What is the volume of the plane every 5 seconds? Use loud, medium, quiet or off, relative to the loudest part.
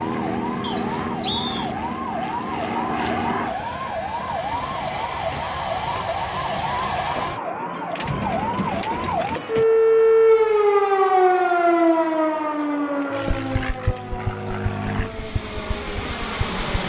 loud, loud, medium, loud.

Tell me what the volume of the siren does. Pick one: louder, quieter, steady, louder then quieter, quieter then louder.
louder then quieter.